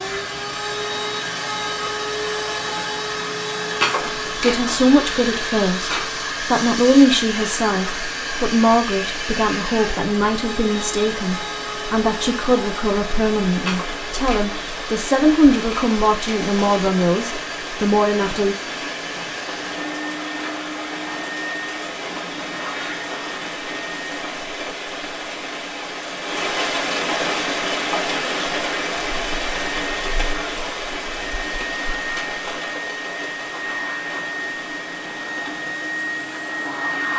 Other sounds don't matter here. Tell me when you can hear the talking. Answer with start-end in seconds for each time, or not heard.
4.3-18.6.